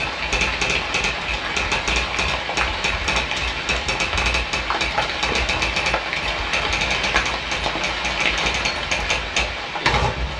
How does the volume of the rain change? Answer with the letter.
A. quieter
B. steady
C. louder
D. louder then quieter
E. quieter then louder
B.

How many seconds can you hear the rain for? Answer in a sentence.
The rain can be heard for 10 seconds in total.